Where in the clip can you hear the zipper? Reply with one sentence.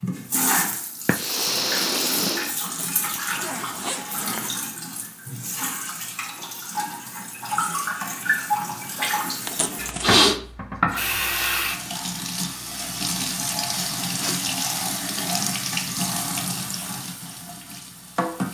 The zipper can be heard from 2.6 to 4.5 s and from 9.4 to 10.2 s.